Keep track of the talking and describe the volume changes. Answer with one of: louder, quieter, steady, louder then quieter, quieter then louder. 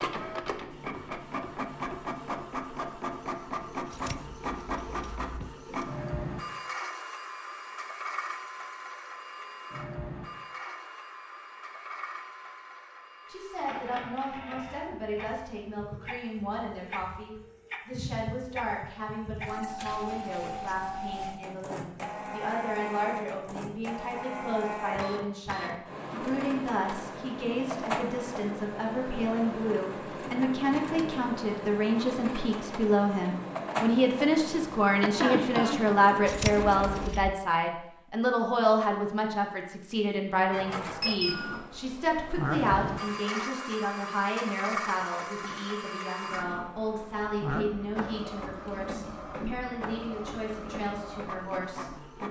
louder then quieter.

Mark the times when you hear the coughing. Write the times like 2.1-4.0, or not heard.
35.0-36.0.